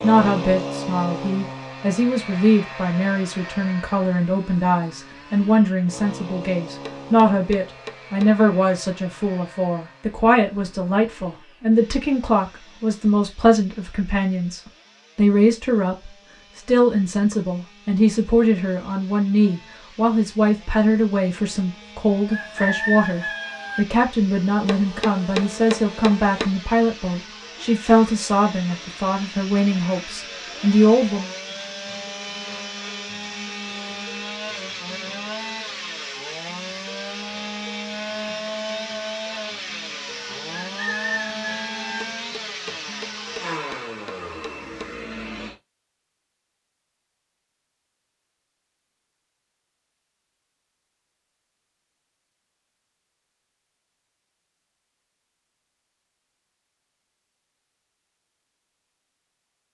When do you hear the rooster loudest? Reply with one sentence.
The loudest moment of the rooster is at 23 seconds.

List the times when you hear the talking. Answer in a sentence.
The talking can be heard from 0.0 to 31.3 s.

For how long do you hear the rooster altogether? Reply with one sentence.
You can hear the rooster for 3 seconds altogether.